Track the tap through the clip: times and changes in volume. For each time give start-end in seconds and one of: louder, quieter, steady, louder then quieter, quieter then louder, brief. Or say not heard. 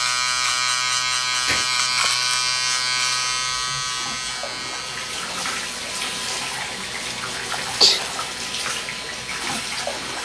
1.7-10.2 louder.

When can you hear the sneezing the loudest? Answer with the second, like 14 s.
8 s.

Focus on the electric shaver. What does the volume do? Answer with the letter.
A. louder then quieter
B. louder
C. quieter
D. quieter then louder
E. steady
C.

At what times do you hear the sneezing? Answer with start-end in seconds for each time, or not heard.
1.4-2.1, 7.1-8.1.